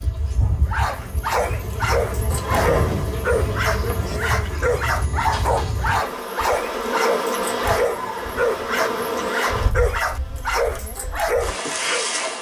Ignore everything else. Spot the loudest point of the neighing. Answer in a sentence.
The volume of the neighing peaks at 3 seconds.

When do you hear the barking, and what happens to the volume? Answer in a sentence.
The barking can be heard from 0.4 to 12.1 s, at a steady volume.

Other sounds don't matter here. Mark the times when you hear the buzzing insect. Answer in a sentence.
The buzzing insect can be heard from 0.0 to 12.3 s.